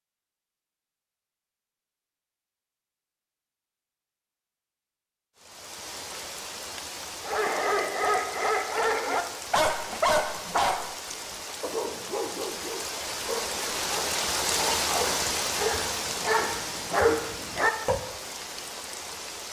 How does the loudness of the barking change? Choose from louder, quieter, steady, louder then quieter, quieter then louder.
quieter then louder.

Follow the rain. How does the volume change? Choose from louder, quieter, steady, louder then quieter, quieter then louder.
louder then quieter.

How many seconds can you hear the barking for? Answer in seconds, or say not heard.
11 s.